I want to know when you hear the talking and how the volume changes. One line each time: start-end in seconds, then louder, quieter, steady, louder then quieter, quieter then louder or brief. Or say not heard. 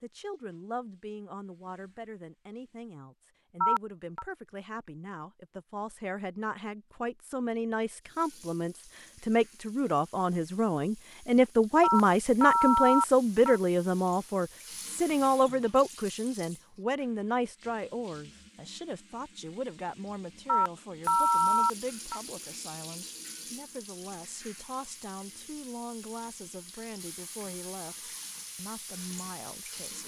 0.0-30.0 louder then quieter.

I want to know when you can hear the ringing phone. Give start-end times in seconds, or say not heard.
3.6-4.2, 11.8-13.6, 20.4-22.2.